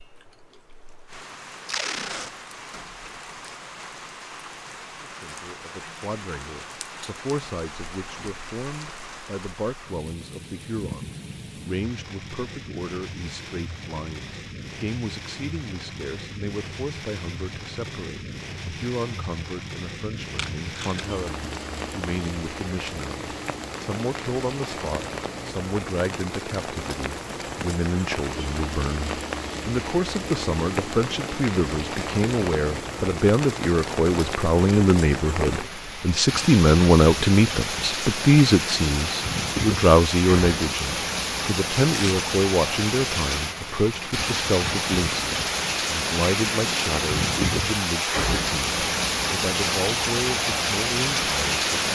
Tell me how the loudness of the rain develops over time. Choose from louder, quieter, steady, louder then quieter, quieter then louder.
louder.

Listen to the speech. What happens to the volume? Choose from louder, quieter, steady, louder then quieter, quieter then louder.
louder then quieter.